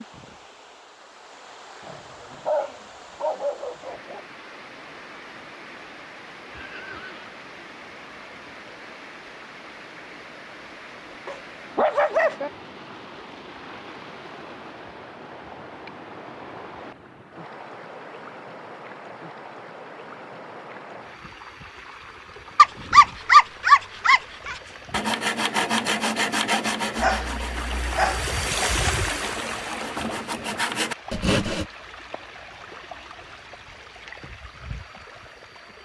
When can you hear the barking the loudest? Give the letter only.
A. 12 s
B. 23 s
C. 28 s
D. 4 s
B.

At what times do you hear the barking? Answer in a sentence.
You can hear the barking from 1.8 to 4.2 s, from 11.2 to 12.5 s, from 22.6 to 24.6 s and from 26.9 to 28.3 s.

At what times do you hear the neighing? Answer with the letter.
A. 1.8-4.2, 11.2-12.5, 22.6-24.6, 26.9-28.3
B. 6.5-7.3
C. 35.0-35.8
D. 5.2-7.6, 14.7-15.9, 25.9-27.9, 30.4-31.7
B.